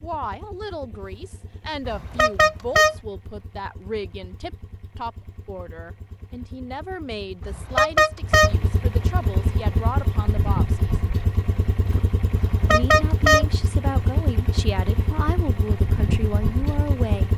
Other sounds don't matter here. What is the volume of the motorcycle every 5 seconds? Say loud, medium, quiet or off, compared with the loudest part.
quiet, medium, loud, loud.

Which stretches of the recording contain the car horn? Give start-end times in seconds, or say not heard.
1.9-3.0, 7.4-8.6, 12.3-13.4.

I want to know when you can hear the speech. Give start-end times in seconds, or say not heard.
0.0-10.9, 12.7-17.3.